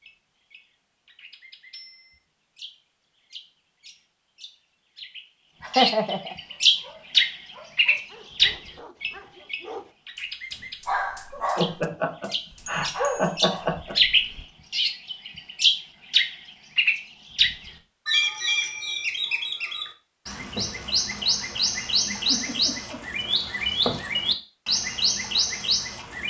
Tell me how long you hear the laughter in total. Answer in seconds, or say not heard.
4 s.